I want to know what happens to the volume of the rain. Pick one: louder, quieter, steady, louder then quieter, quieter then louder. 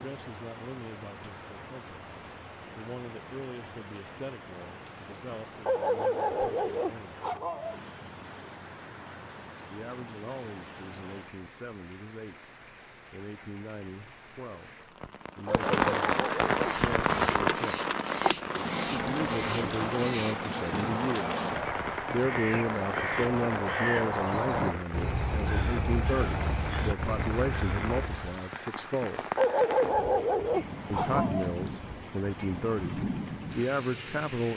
louder then quieter.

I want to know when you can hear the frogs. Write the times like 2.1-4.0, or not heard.
not heard.